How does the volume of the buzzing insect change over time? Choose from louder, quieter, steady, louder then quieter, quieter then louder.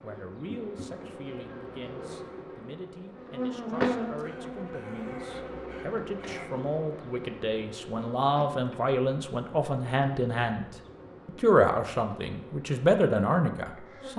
louder then quieter.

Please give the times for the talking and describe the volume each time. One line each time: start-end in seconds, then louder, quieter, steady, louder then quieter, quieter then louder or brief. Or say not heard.
0.0-10.7 louder
11.2-14.1 brief.